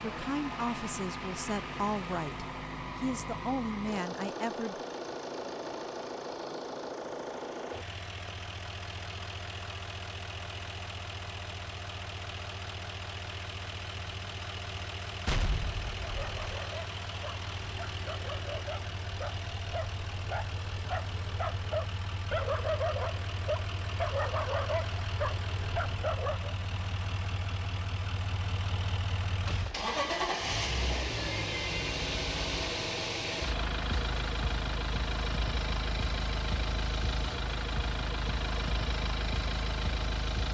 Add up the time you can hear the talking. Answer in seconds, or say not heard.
5 s.